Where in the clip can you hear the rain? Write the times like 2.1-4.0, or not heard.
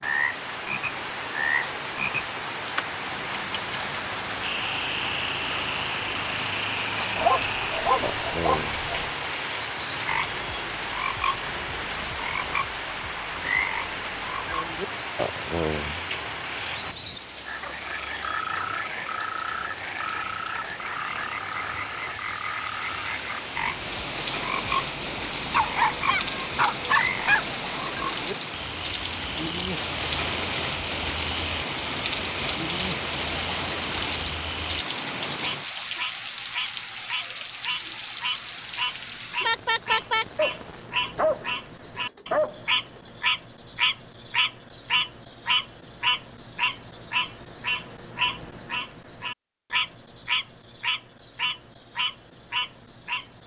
0.0-40.9.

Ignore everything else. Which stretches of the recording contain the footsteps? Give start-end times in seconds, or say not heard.
not heard.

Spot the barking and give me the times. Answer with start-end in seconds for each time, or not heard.
7.2-9.1, 25.5-27.4, 40.4-43.0.